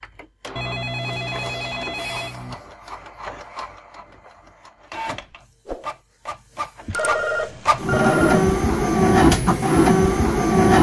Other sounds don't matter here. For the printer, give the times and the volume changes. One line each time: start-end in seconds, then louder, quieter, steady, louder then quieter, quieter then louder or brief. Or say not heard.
0.0-10.7 louder.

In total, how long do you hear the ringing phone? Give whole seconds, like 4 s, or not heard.
4 s.